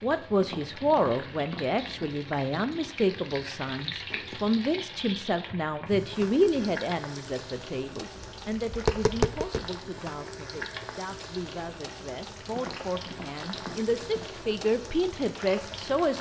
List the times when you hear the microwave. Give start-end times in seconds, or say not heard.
not heard.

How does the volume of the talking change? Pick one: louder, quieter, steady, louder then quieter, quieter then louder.
quieter then louder.